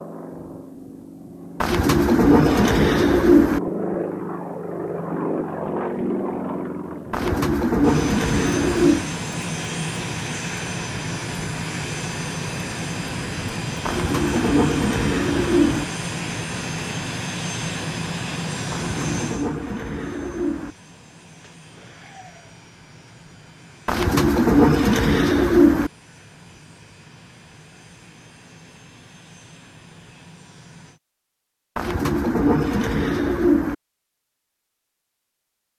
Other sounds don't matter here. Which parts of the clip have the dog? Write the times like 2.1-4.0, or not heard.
not heard.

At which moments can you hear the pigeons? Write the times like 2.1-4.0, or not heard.
1.6-3.6, 7.1-9.1, 13.8-15.8, 18.7-20.8, 23.9-25.9, 31.8-33.8.